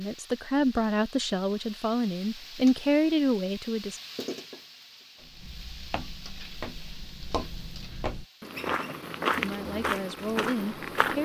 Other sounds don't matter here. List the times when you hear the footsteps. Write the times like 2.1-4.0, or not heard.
5.2-11.2.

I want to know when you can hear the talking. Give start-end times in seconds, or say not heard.
0.0-4.0, 9.4-11.2.